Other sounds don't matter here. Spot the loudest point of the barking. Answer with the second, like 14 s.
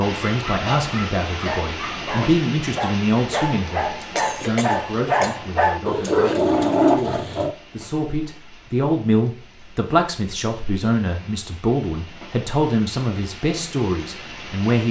7 s.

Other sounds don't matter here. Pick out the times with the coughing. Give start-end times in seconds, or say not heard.
4.0-5.4.